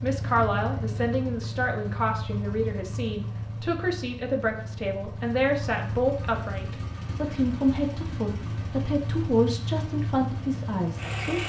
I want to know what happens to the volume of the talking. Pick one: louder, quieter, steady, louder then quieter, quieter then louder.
steady.